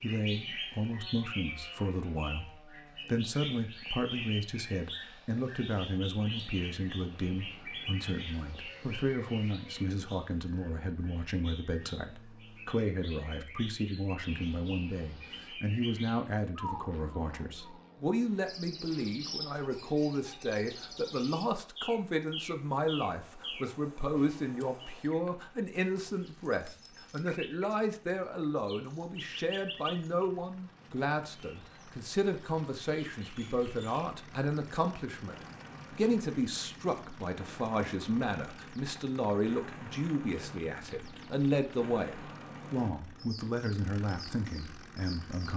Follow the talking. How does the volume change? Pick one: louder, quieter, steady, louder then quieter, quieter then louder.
steady.